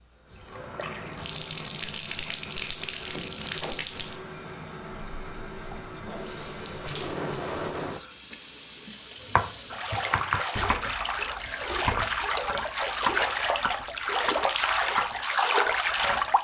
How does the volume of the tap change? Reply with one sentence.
The volume of the tap goes up.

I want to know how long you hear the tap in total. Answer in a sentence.
The tap can be heard for 16 seconds in total.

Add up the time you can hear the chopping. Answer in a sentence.
The chopping can be heard for 7 seconds in total.